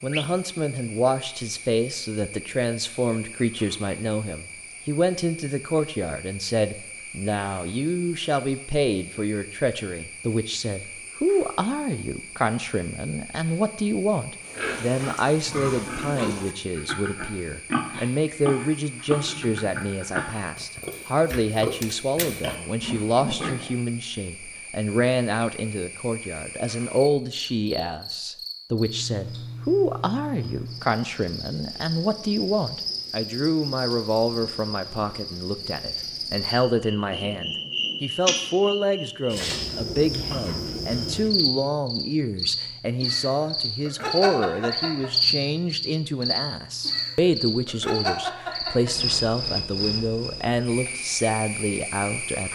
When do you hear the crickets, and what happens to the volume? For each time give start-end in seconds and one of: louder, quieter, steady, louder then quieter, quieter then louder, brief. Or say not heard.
0.0-52.5 louder.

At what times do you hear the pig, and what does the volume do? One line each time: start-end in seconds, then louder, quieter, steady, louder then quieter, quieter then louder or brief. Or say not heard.
14.4-23.8 steady.